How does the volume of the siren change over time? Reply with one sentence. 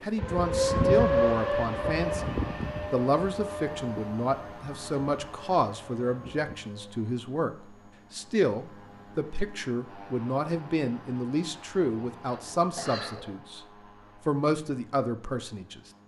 The loudness of the siren goes down.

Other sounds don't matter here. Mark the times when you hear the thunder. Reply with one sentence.
You can't hear the thunder here.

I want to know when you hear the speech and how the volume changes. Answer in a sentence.
You can hear the speech from 0.0 to 15.8 s, at a steady volume.